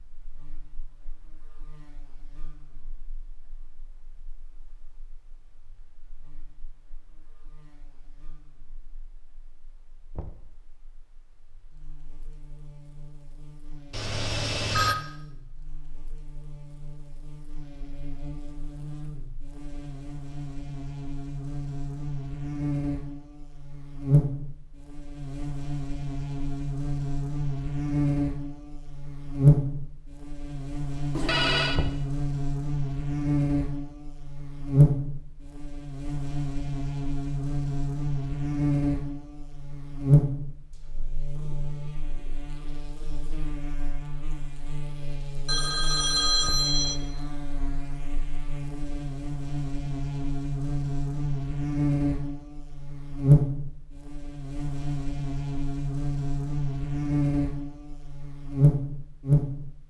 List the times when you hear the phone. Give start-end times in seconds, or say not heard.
13.9-14.9, 31.1-31.8, 45.5-47.0.